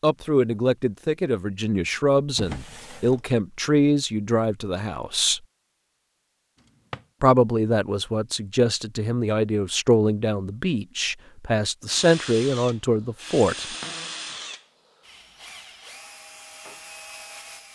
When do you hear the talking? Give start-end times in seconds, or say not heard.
0.0-5.4, 7.2-13.7.